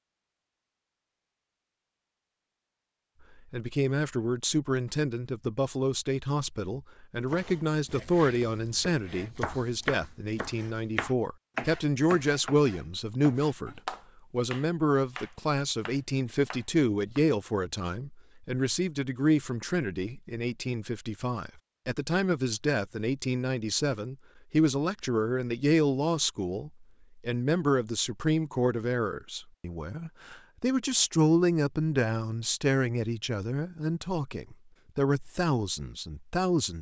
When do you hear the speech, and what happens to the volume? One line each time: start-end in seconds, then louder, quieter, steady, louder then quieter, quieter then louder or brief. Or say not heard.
3.5-36.7 steady.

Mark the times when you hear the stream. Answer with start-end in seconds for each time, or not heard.
not heard.